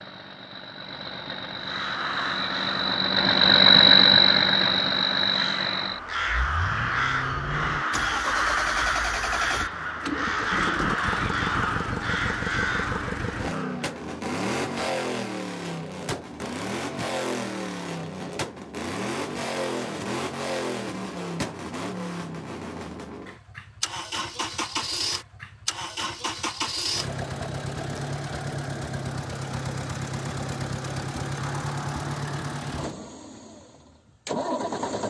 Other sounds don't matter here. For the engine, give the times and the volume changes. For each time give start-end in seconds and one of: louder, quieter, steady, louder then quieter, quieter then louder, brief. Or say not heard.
0.0-35.0 quieter.